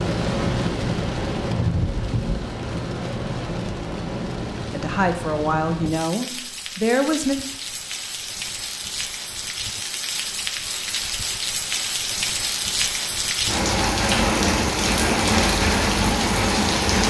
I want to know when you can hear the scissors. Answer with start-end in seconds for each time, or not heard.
not heard.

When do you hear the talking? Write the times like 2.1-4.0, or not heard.
4.7-7.3.